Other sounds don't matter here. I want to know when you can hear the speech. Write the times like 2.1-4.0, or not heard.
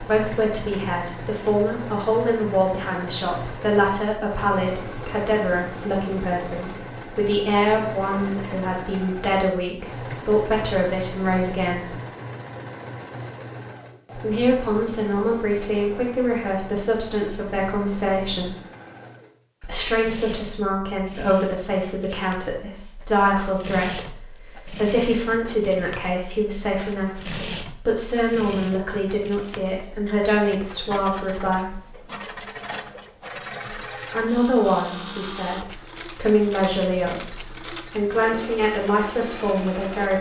0.0-11.9, 14.2-18.6, 19.6-31.8, 34.1-40.1.